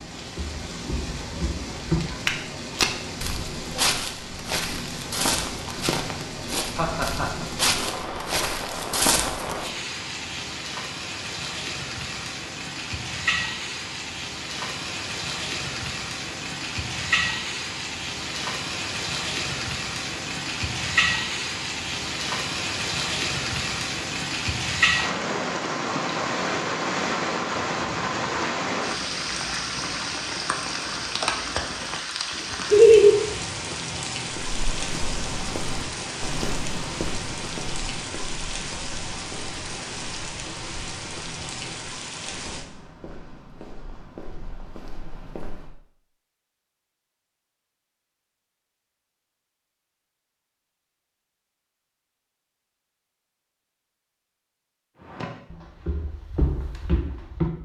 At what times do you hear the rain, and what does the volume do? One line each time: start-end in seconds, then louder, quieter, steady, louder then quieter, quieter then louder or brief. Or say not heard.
0.0-42.6 louder then quieter.